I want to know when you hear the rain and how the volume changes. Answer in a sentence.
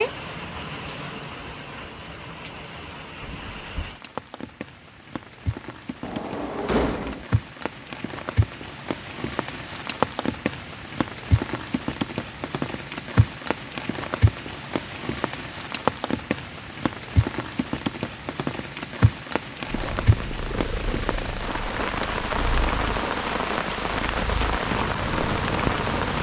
You can hear the rain from 0.0 to 26.1 s, getting louder.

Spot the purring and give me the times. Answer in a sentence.
You can hear the purring from 19.6 to 26.1 s.